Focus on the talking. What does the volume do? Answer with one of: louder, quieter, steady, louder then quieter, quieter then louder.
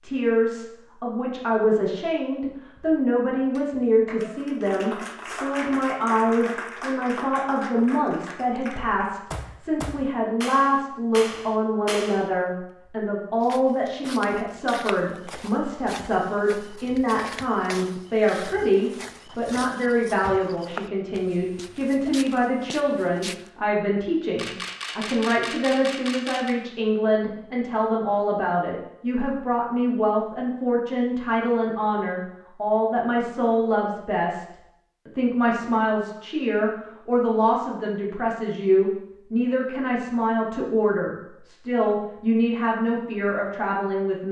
steady.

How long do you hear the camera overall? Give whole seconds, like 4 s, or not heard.
3 s.